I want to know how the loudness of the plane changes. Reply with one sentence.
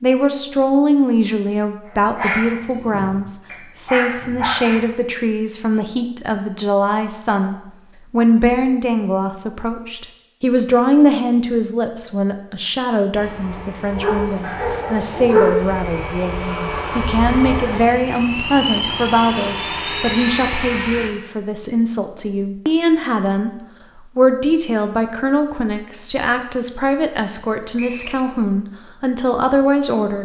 The volume of the plane goes up.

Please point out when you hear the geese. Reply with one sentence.
You can't hear the geese here.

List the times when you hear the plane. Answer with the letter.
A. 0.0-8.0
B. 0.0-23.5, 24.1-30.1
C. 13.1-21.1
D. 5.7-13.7
C.